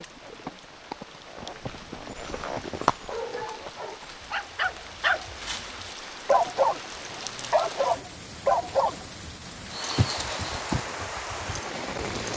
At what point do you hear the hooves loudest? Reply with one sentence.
The loudest moment of the hooves is at 3 seconds.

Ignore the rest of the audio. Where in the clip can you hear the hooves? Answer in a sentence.
You can hear the hooves from 0.1 to 4.2 s and from 9.7 to 12.3 s.